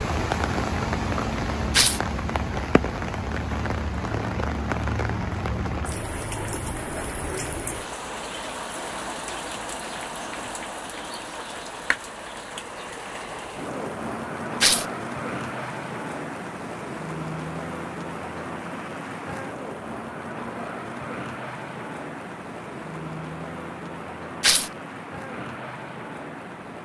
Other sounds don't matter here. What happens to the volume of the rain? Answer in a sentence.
The loudness of the rain goes down.